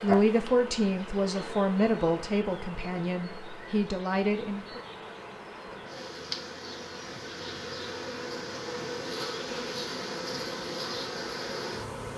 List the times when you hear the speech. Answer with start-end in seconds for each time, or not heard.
0.0-4.8.